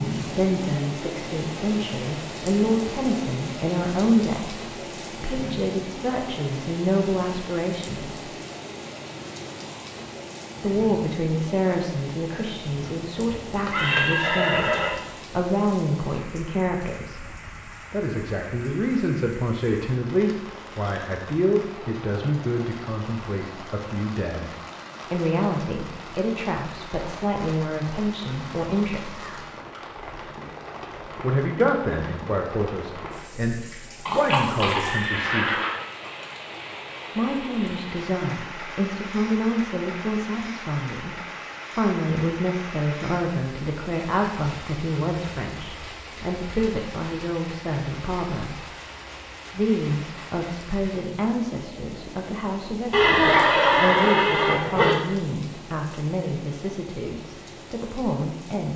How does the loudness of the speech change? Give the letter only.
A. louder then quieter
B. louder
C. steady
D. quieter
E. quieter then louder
C.